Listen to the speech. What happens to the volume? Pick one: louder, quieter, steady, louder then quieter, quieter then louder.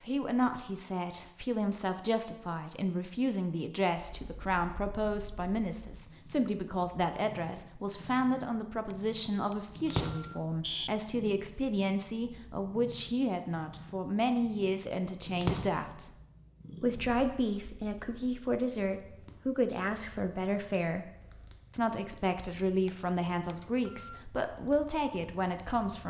steady.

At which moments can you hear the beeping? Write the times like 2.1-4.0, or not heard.
8.9-10.9, 22.9-24.2.